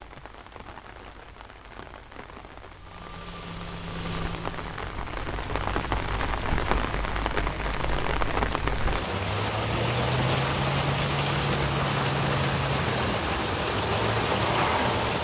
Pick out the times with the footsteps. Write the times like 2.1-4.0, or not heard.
not heard.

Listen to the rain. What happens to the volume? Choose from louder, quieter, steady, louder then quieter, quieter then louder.
louder.